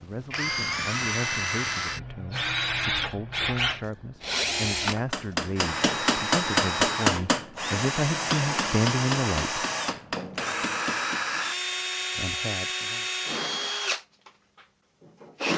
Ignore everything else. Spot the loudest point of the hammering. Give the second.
7 s.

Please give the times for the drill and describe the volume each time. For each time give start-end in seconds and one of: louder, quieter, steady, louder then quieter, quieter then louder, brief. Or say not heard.
0.1-15.5 steady.